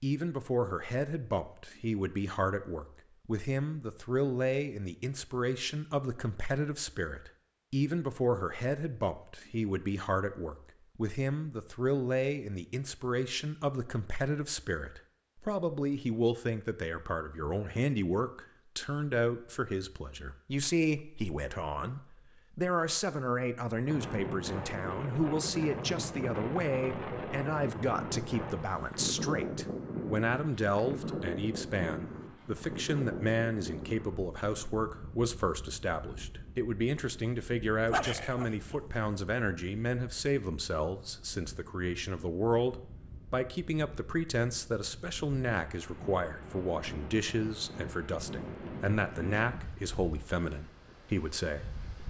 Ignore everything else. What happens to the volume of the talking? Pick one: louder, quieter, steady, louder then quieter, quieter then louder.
steady.